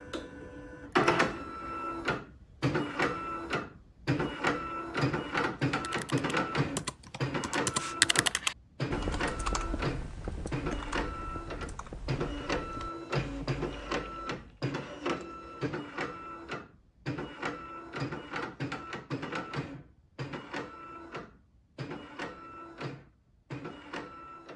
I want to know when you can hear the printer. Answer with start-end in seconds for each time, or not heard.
0.0-24.5.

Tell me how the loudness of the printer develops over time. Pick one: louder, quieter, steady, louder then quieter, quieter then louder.
quieter.